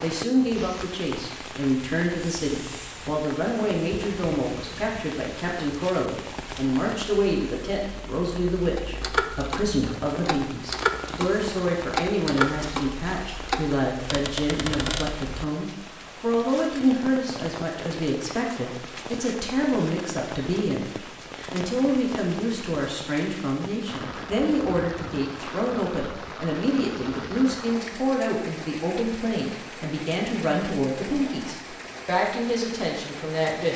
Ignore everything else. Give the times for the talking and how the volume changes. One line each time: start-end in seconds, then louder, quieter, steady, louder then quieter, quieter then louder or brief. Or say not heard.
0.0-33.7 steady.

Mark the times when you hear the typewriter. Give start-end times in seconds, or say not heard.
8.8-15.2.